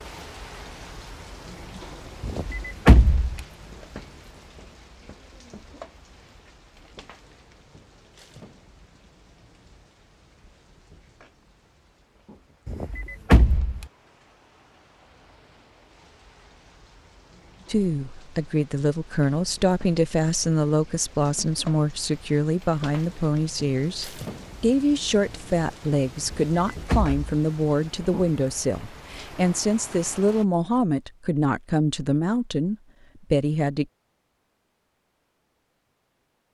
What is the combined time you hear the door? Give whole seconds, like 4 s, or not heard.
3 s.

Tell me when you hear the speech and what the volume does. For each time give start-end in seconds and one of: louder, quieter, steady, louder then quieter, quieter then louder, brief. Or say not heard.
17.6-33.9 steady.